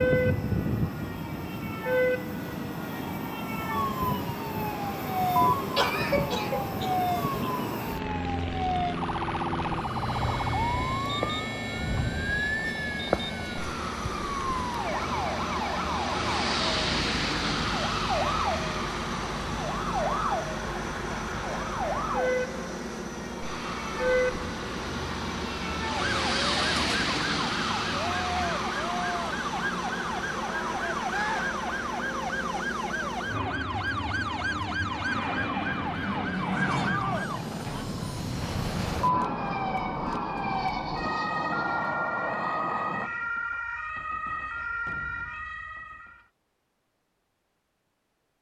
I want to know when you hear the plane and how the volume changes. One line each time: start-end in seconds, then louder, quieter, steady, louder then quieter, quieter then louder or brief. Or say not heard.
0.0-43.1 steady.